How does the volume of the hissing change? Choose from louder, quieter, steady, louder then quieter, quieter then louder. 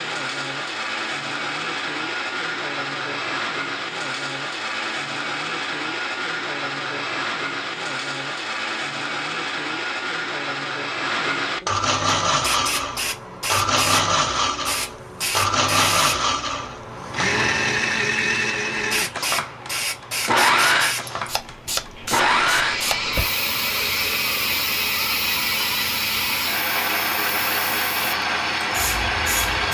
quieter.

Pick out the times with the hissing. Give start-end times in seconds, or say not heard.
12.2-29.6.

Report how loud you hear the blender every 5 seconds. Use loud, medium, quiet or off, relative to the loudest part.
medium, medium, loud, loud, loud, loud.